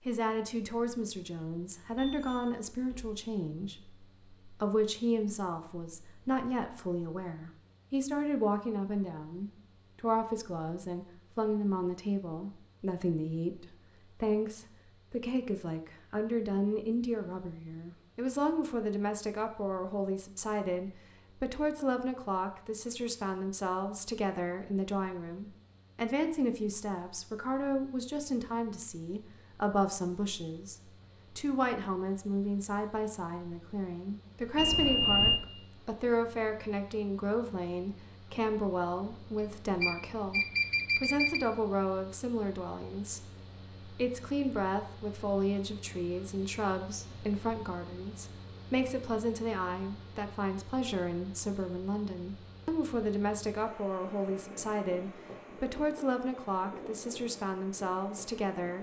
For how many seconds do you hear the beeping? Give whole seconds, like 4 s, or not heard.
4 s.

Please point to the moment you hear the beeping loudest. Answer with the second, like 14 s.
35 s.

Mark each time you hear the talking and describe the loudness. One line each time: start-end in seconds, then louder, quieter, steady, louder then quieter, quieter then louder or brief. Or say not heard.
0.1-30.8 steady
31.4-58.7 steady.